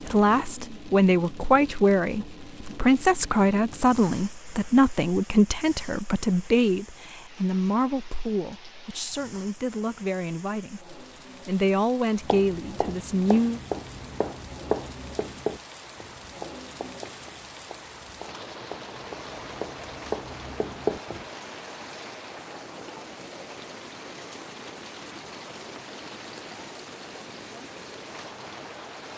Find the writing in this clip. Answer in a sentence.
You can hear the writing from 12.2 to 21.2 s.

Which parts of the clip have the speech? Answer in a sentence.
The speech can be heard from 0.0 to 13.6 s.